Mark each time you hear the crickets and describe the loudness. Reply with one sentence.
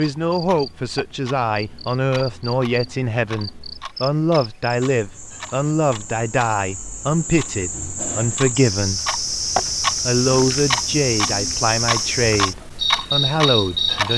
You can hear the crickets from 0.1 to 14.1 s, getting louder.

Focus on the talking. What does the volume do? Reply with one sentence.
The volume of the talking stays about the same.